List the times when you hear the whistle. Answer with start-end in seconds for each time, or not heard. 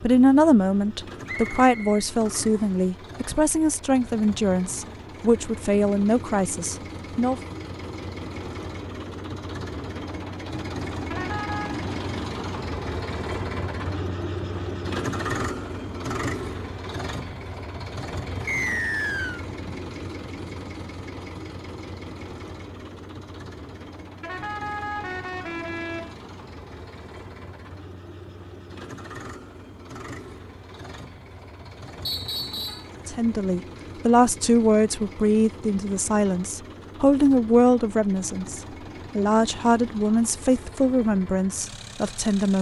1.2-2.8, 18.4-19.4, 32.0-32.9.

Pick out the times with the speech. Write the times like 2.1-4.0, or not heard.
0.0-7.4, 33.0-42.5.